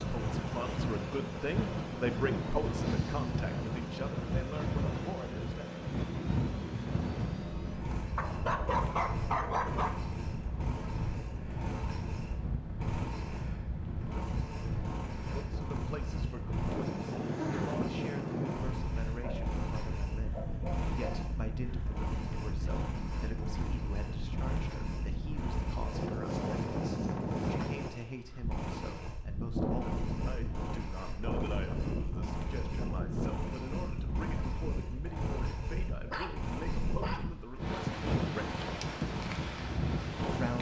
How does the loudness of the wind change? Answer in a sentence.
The loudness of the wind stays about the same.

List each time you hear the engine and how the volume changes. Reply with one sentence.
You can hear the engine from 0.0 to 40.5 s, at a steady volume.